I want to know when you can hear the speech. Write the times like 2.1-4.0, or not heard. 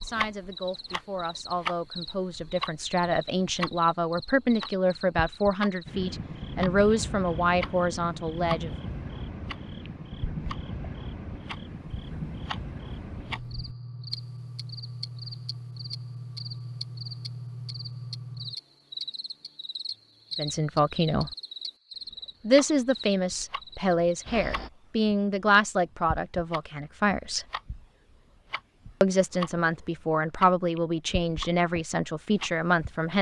0.0-8.7, 20.4-21.3, 22.4-27.4, 29.0-33.1.